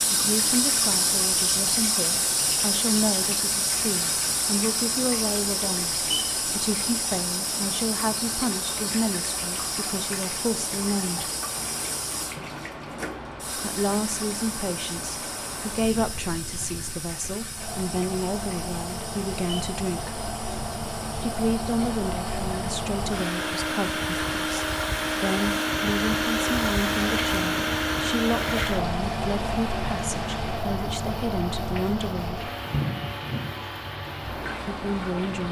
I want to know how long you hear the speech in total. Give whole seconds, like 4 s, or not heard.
30 s.